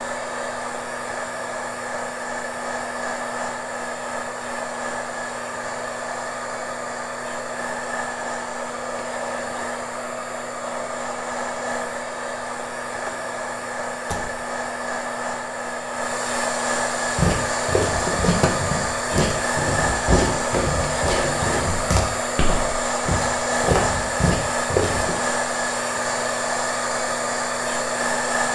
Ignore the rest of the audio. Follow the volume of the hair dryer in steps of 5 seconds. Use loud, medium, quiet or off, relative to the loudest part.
medium, medium, medium, loud, loud, loud.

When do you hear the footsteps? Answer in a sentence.
You can hear the footsteps from 17.1 to 25.1 s.